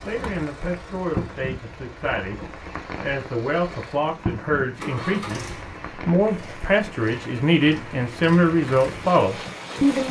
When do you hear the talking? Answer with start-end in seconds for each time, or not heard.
0.0-2.4, 3.0-10.0.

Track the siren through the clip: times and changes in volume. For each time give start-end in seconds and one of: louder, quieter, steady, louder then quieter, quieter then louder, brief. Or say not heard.
not heard.